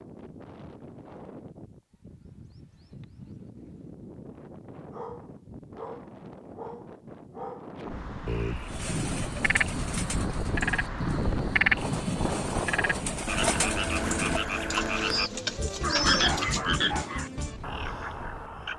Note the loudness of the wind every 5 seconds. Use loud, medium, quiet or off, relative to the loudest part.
quiet, medium, loud, medium.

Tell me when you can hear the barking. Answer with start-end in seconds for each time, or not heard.
4.9-7.7, 15.8-17.3.